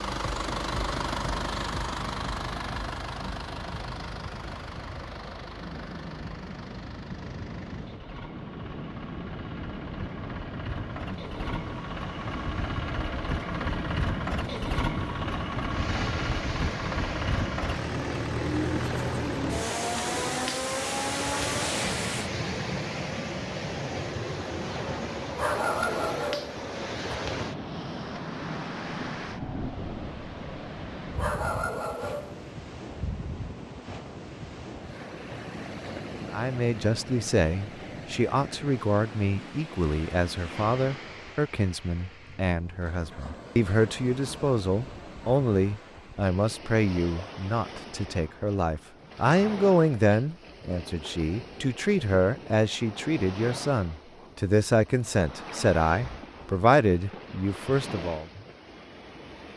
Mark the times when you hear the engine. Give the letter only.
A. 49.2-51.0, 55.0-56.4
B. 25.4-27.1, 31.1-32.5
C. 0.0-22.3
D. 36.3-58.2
C.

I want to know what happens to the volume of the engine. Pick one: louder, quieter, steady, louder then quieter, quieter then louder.
quieter then louder.